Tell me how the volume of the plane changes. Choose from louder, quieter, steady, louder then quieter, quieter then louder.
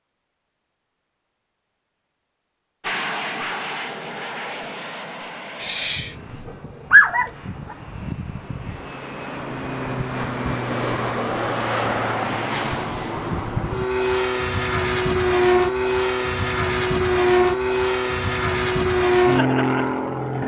louder.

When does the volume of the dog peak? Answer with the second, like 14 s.
7 s.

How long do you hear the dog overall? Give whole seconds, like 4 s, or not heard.
2 s.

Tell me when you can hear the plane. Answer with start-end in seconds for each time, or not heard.
2.8-20.4.